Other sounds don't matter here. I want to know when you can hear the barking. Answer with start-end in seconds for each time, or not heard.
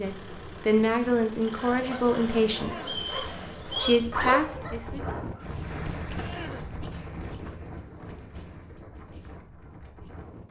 1.7-5.2.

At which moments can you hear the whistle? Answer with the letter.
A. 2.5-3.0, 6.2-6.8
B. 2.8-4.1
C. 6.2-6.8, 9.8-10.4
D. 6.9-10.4
B.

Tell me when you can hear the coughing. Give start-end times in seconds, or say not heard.
2.5-3.0, 6.2-6.8.